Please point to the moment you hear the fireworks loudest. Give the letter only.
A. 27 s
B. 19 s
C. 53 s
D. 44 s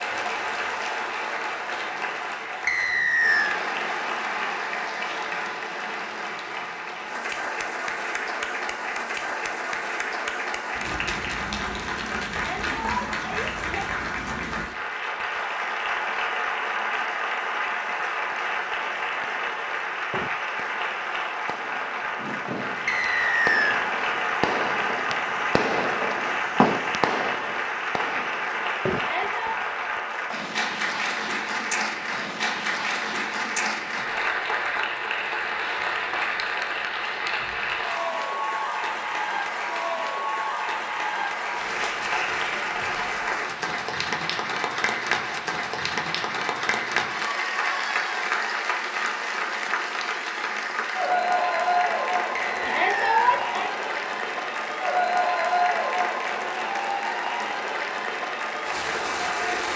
A.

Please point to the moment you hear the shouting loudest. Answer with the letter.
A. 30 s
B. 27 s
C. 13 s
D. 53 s
D.